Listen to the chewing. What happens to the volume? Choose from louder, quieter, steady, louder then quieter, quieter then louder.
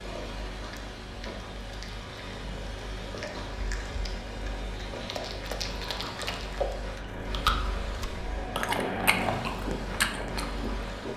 louder.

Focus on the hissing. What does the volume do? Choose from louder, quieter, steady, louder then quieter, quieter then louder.
louder.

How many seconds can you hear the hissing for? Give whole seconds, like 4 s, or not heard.
11 s.